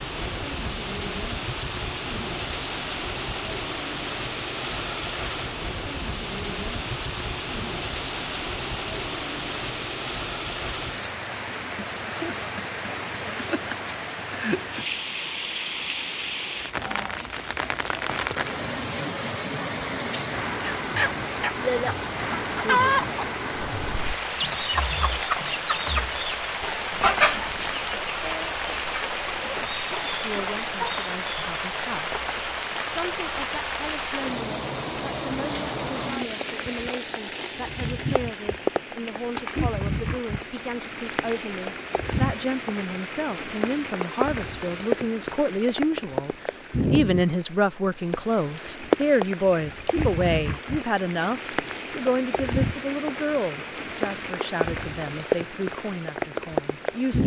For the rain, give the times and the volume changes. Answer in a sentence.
You can hear the rain from 0.0 to 57.2 s, at a steady volume.